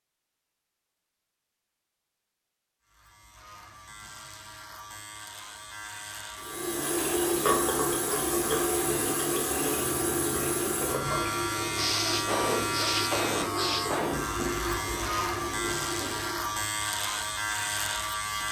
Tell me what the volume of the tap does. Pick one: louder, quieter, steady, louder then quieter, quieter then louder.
quieter.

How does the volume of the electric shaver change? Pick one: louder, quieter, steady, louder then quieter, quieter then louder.
louder.